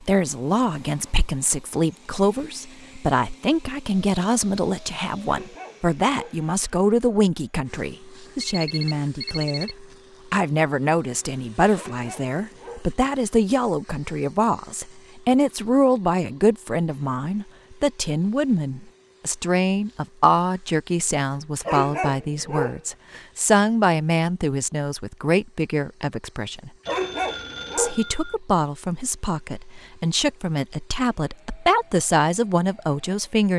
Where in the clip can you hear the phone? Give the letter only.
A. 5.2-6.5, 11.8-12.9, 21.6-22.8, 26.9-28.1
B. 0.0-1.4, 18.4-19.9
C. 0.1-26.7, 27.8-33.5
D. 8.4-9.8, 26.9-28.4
D.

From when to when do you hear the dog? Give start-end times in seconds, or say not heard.
5.2-6.5, 11.8-12.9, 21.6-22.8, 26.9-28.1.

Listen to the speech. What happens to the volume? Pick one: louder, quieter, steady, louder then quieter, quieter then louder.
steady.